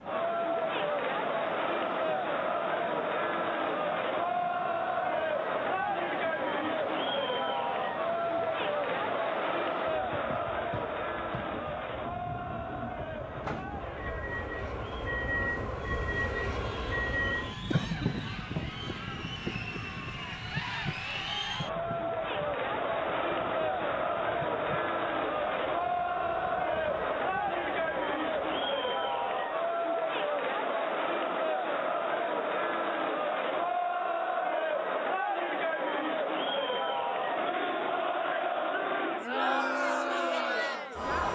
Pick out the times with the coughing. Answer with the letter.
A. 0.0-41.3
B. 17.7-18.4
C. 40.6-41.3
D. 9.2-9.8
B.